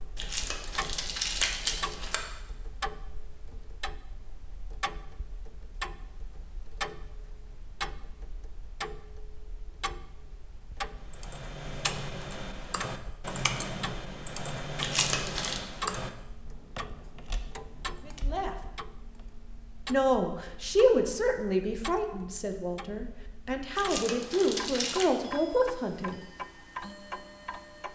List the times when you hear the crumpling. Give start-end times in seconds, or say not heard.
0.1-2.2, 14.8-15.6, 23.8-25.1.